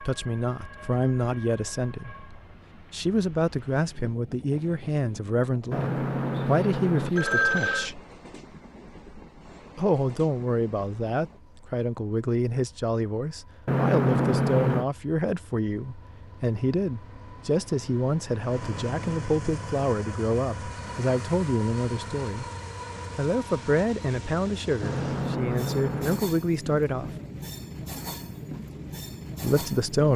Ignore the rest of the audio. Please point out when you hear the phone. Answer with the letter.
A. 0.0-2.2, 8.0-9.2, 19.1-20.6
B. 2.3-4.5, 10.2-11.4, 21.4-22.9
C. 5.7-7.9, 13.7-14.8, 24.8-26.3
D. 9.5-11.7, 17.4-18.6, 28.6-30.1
C.